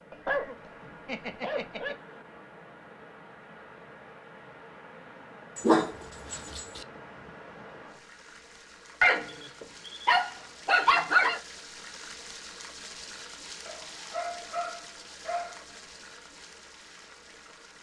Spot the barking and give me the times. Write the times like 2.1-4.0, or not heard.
0.1-1.9, 5.5-6.8, 9.0-11.4, 13.7-15.6.